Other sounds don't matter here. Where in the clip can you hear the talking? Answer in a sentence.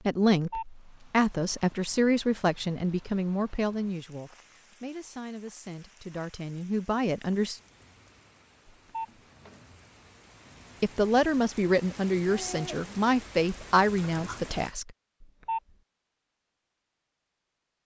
The talking can be heard from 0.1 to 7.6 s and from 10.8 to 14.9 s.